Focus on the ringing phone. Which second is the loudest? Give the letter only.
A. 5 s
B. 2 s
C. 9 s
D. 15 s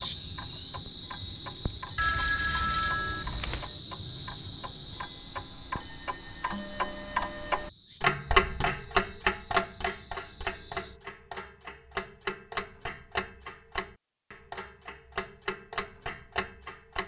B.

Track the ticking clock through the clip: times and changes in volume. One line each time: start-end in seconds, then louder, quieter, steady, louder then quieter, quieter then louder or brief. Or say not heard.
0.0-17.0 louder then quieter.